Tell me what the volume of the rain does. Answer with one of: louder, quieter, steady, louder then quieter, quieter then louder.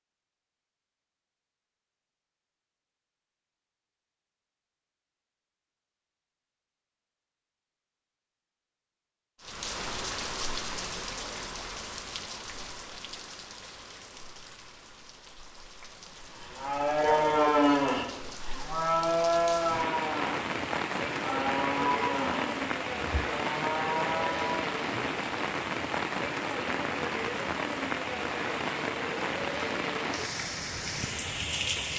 quieter then louder.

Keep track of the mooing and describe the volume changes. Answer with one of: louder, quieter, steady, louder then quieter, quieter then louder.
quieter.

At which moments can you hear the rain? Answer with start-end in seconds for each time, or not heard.
9.4-31.9.